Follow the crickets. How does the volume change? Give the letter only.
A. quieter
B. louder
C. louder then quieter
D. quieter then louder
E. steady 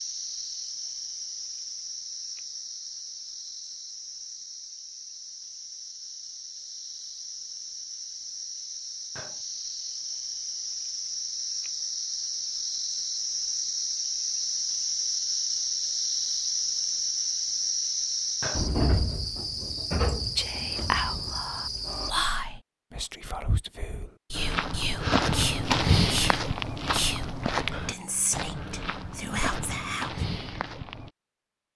B.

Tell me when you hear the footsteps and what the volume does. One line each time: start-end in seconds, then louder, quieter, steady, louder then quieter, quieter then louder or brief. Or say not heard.
24.4-31.1 quieter.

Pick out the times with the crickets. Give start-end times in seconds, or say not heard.
0.0-22.1.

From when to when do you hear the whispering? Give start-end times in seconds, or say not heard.
20.4-30.1.